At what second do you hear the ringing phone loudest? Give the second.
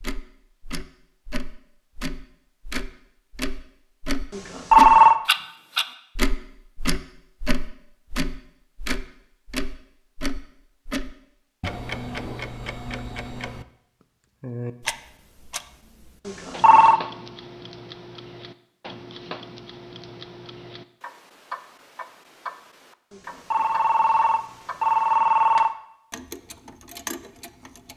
5 s.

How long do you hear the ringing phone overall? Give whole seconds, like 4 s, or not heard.
4 s.